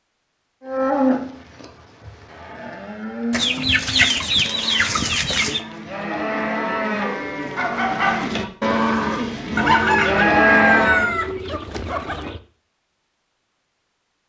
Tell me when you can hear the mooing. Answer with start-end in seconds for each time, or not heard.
0.6-11.1.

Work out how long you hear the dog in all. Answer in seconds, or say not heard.
not heard.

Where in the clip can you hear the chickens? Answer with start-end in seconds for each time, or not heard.
3.3-5.6, 9.6-12.4.